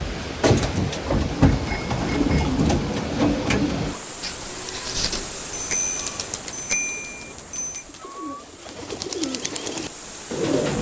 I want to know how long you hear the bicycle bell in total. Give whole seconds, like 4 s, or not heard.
3 s.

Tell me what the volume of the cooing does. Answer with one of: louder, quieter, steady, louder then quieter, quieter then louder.
quieter then louder.